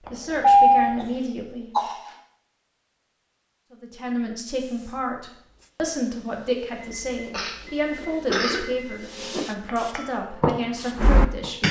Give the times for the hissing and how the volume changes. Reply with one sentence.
The hissing can be heard from 4.5 to 11.6 s, getting louder.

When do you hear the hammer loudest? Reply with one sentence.
The volume of the hammer peaks at 11 seconds.